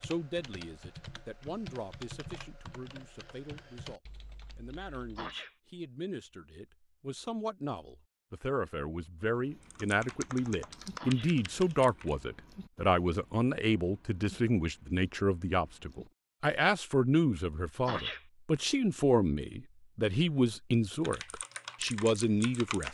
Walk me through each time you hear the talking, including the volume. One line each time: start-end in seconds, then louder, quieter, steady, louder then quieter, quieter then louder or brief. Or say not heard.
0.0-22.8 louder.